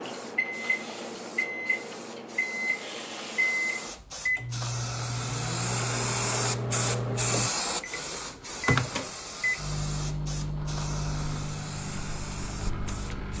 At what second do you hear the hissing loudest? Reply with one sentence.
The loudest moment of the hissing is at 7 seconds.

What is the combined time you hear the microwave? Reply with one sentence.
You can hear the microwave for 13 seconds altogether.